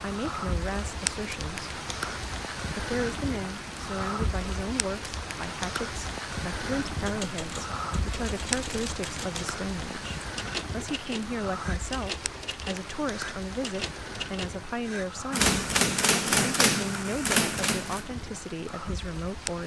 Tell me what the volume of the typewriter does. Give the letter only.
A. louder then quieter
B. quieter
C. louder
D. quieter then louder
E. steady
C.